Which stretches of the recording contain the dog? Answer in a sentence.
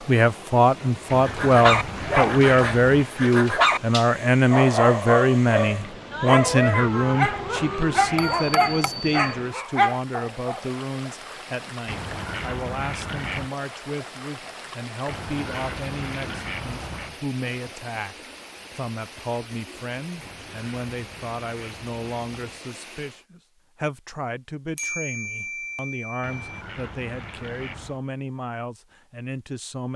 You can hear the dog from 1.2 to 10.6 s.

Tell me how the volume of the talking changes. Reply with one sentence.
The loudness of the talking goes down.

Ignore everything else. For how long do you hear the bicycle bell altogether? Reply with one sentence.
You can hear the bicycle bell for 3 seconds altogether.